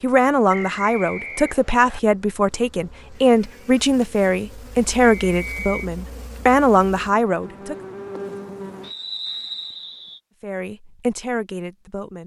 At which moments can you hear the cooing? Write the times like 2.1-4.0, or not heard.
not heard.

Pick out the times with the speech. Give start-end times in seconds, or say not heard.
0.0-7.8, 10.4-12.2.